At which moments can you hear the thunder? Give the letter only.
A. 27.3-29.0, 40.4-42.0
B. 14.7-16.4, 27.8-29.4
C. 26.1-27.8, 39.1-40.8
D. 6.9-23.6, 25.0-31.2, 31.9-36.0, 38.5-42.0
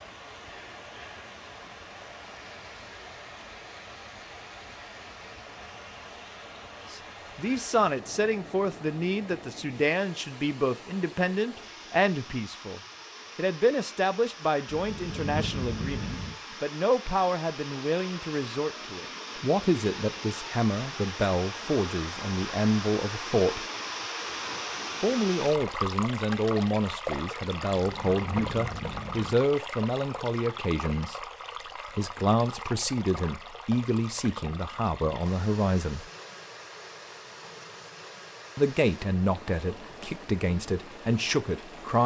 B.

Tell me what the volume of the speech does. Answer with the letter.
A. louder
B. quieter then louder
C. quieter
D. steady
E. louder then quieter
D.